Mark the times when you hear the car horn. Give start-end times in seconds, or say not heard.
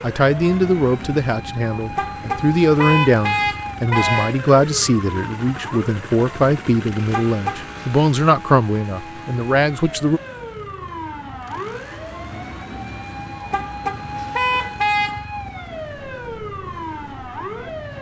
1.9-4.3, 7.1-8.0, 13.5-15.2.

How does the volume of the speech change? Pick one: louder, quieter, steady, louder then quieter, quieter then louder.
steady.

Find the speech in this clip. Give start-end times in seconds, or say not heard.
0.0-10.2.